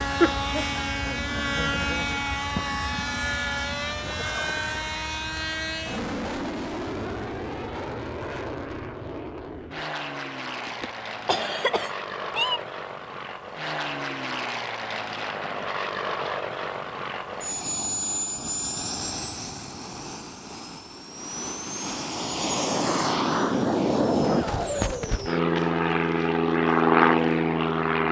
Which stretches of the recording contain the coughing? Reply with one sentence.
The coughing can be heard from 10.7 to 12.7 s.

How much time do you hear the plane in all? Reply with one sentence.
The plane can be heard for 28 seconds in total.